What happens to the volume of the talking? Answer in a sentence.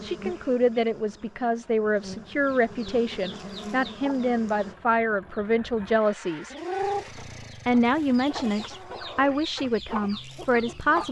The volume of the talking stays about the same.